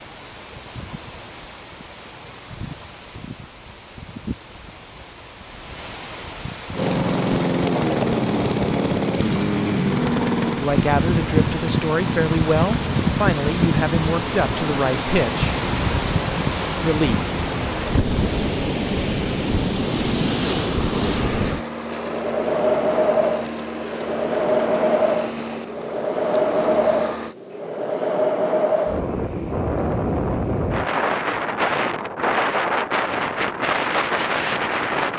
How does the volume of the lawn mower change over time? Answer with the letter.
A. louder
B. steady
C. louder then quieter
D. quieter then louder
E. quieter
E.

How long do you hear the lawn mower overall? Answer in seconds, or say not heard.
21 s.